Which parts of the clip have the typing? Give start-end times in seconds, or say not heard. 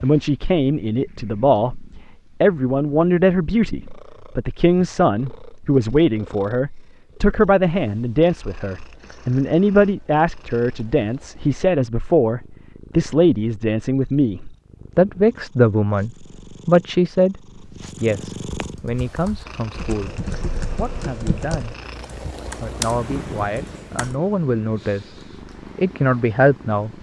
18.4-24.1.